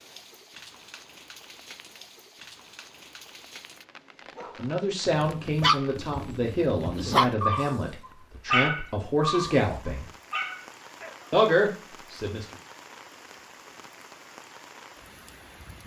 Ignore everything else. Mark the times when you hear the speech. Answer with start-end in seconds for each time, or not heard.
4.5-10.1, 11.3-12.6.